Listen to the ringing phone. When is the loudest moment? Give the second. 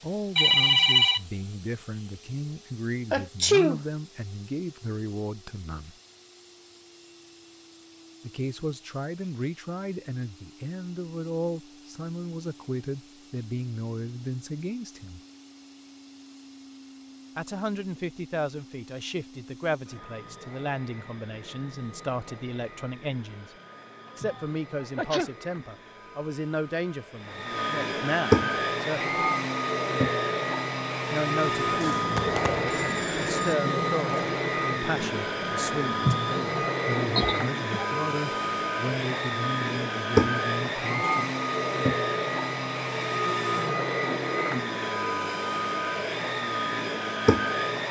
1 s.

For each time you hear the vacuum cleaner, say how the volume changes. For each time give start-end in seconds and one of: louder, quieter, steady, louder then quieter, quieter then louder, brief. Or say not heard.
0.0-47.8 louder.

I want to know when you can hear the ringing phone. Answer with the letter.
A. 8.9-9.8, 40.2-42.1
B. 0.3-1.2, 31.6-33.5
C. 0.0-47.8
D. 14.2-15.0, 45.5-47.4
B.